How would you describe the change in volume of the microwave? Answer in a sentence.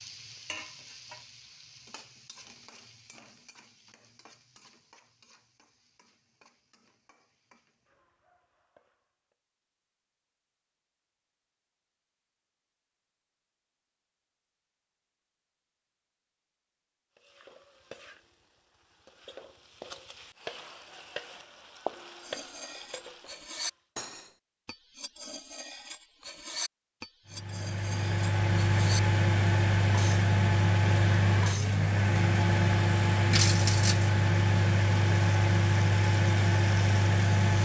The loudness of the microwave stays about the same.